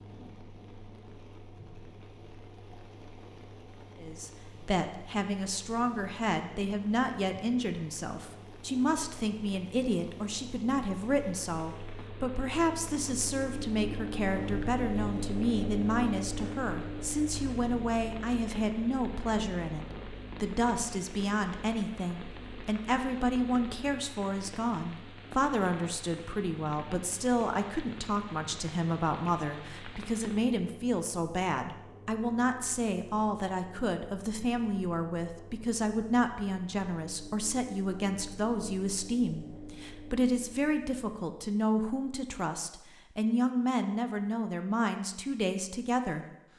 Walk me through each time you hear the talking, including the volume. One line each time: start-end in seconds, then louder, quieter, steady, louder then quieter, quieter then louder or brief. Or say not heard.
4.0-46.2 steady.